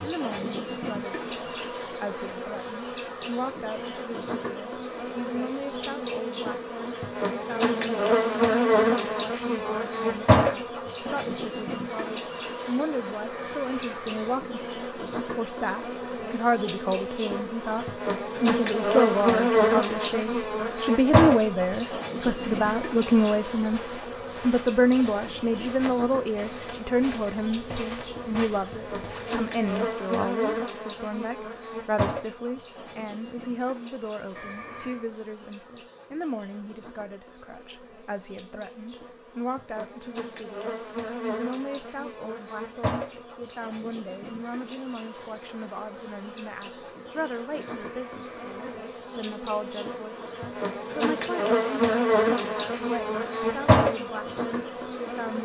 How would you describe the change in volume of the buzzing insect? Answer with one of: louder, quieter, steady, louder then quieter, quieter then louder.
quieter then louder.